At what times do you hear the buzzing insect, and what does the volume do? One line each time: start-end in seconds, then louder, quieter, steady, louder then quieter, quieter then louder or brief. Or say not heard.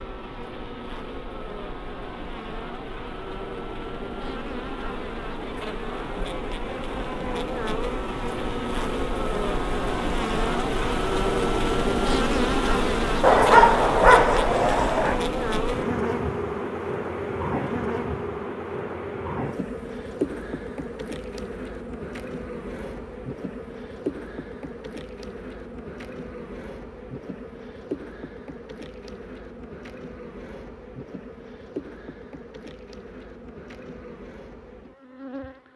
0.0-35.7 louder then quieter.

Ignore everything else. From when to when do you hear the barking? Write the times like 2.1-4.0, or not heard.
13.2-15.2.